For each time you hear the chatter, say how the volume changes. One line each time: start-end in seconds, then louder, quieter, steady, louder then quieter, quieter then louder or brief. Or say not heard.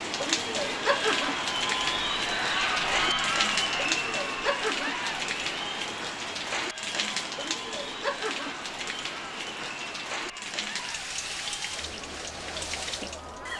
0.2-13.5 quieter.